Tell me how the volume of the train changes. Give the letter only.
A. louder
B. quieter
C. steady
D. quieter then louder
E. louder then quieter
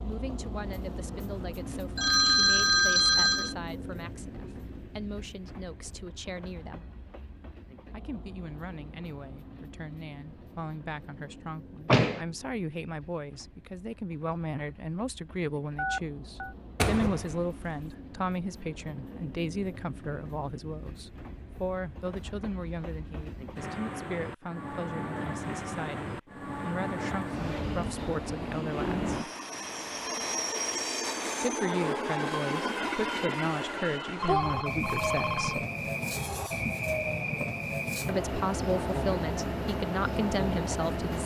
D.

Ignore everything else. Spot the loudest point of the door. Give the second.
12 s.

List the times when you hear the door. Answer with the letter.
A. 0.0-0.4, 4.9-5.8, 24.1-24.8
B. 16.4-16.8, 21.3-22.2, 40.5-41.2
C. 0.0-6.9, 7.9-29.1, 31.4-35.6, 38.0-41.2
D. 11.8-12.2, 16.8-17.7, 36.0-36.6
D.